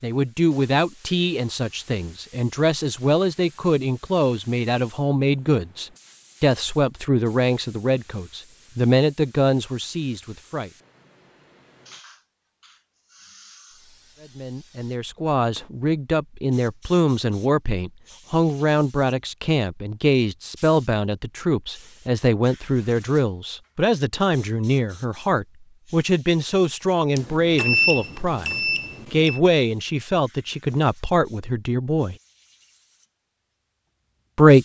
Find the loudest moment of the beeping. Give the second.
28 s.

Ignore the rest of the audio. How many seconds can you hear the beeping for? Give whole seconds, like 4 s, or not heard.
2 s.